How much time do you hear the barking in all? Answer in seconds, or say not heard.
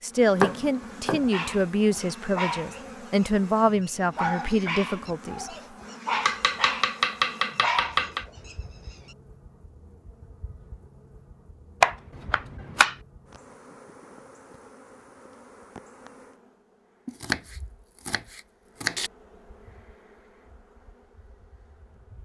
8 s.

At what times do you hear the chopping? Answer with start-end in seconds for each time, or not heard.
0.4-1.2, 6.1-8.2, 11.8-12.9, 17.1-19.1.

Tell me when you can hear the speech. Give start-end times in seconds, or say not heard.
0.0-5.5.